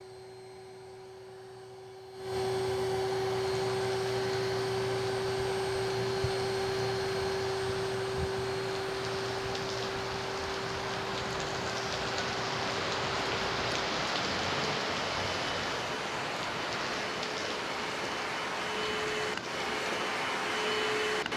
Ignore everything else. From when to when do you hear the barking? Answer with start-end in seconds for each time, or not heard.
not heard.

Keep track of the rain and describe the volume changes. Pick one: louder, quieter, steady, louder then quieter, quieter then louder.
louder then quieter.